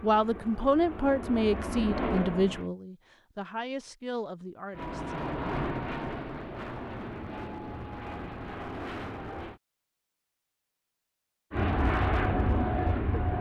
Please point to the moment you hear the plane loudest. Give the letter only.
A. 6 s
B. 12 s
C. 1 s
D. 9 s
B.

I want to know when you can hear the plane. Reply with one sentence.
You can hear the plane from 0.0 to 2.7 s, from 4.7 to 9.6 s and from 11.5 to 13.3 s.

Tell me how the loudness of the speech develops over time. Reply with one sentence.
The volume of the speech goes down.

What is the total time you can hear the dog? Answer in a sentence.
You can't hear the dog here.